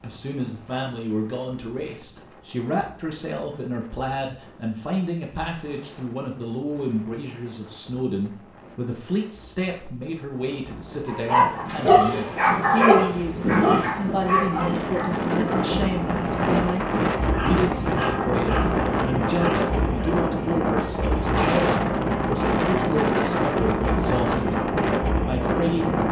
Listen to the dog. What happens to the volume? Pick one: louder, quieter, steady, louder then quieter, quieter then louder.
quieter.